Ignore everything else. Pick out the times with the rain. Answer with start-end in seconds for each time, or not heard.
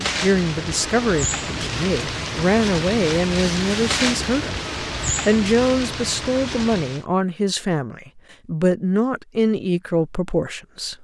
0.0-7.0.